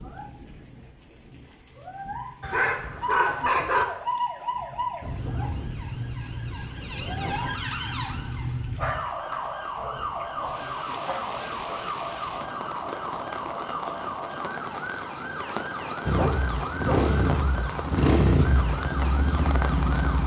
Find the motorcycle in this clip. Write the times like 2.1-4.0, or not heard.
16.1-20.2.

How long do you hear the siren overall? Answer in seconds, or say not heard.
17 s.